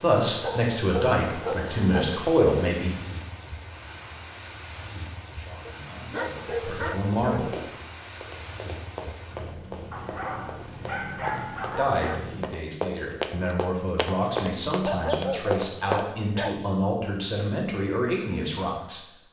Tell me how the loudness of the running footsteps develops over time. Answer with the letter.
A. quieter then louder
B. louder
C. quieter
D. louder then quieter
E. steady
B.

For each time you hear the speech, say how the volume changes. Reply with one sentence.
You can hear the speech briefly from 0.0 to 3.0 s; briefly from 5.3 to 7.5 s; and from 11.8 to 19.1 s, getting louder.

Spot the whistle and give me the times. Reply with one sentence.
The whistle can't be heard in this clip.